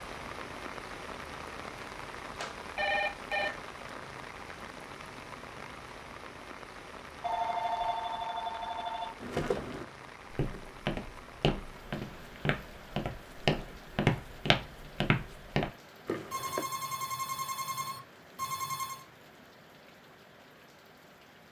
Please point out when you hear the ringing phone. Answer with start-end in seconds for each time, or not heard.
2.4-3.5, 7.2-9.1, 16.3-19.1.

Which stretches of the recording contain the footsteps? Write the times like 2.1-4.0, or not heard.
9.2-16.6.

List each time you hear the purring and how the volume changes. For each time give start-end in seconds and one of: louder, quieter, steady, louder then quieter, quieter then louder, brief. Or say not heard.
not heard.